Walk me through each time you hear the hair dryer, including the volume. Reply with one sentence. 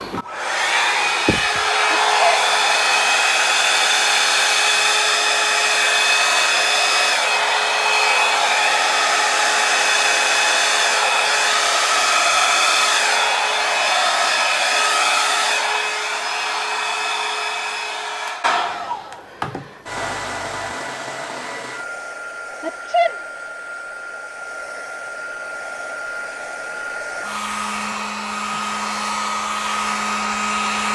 You can hear the hair dryer from 0.0 to 30.8 s, getting quieter.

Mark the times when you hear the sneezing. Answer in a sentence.
You can hear the sneezing from 1.9 to 2.5 s and from 22.6 to 23.2 s.